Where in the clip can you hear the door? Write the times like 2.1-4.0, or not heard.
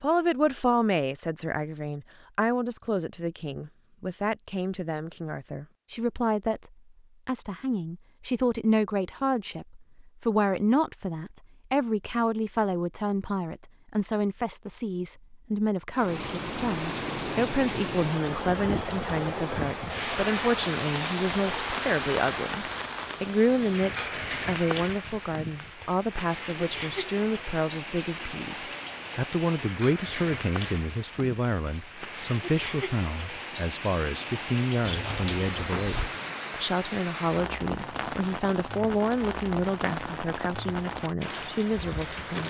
34.8-36.1.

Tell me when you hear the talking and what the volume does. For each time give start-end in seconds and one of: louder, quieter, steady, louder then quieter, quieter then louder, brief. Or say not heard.
0.0-42.4 steady.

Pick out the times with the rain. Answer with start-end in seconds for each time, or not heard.
15.9-42.4.